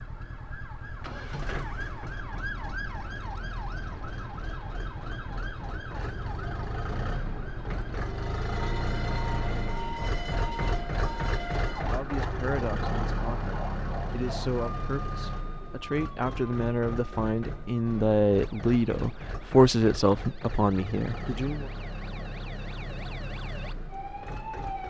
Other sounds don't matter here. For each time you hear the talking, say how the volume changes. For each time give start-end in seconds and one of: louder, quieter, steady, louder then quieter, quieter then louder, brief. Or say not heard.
11.8-21.7 louder.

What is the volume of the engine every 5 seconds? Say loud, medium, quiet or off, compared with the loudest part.
medium, loud, loud, medium, medium.